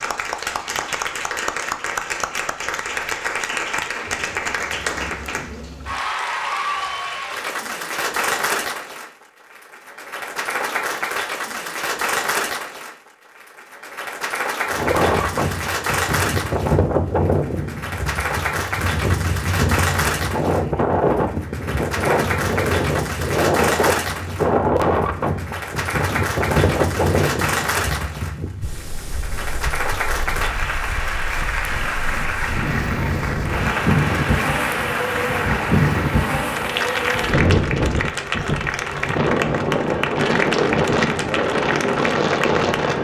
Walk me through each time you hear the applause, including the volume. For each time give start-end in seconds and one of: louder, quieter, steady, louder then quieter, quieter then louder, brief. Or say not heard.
0.0-42.9 steady.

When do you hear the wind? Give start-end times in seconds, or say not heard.
14.7-42.9.